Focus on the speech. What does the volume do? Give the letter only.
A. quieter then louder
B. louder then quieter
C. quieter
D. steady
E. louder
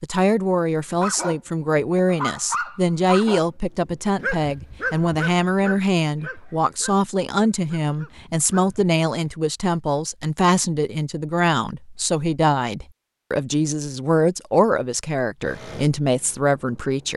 D.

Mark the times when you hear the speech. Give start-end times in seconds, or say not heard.
0.0-17.1.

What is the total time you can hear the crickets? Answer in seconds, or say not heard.
not heard.